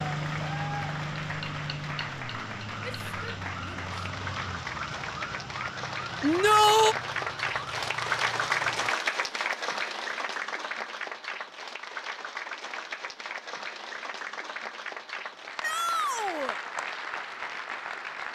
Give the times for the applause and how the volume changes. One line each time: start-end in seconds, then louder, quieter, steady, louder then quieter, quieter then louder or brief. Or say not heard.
0.0-18.3 louder then quieter.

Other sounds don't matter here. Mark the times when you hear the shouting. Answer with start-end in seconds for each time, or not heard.
2.8-3.9, 6.2-7.0, 15.6-16.6.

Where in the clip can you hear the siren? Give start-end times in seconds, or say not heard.
0.0-8.9.